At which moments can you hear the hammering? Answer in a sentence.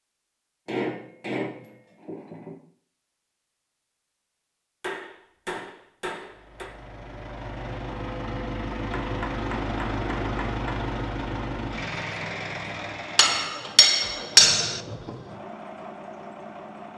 The hammering can be heard from 0.7 to 2.5 s, from 4.8 to 6.7 s, from 8.9 to 10.8 s and from 13.2 to 14.8 s.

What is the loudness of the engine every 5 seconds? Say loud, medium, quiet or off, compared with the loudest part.
off, loud, loud, medium.